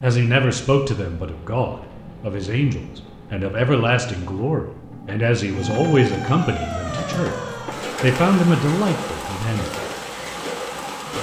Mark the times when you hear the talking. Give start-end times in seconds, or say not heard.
0.0-7.3, 8.0-9.8.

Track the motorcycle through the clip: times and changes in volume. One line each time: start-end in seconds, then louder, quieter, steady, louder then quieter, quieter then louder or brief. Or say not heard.
not heard.